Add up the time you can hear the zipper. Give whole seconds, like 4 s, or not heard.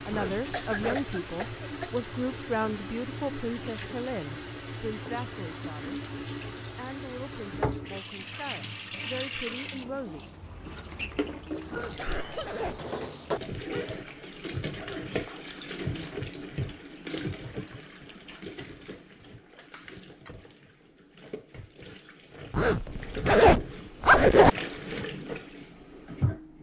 4 s.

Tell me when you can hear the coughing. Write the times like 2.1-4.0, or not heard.
0.5-2.1, 11.7-12.9, 19.6-20.4.